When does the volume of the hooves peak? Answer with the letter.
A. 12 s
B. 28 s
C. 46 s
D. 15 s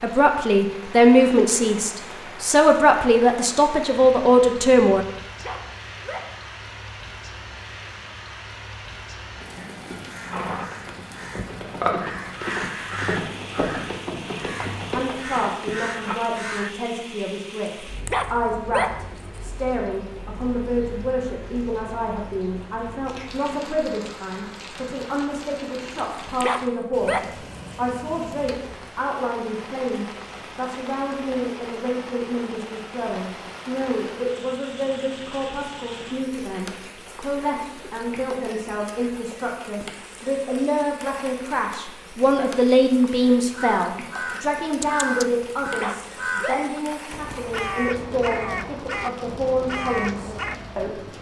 A.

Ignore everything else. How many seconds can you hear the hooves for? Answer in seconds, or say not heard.
7 s.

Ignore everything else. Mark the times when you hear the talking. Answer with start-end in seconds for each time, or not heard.
0.0-5.0, 14.9-51.1.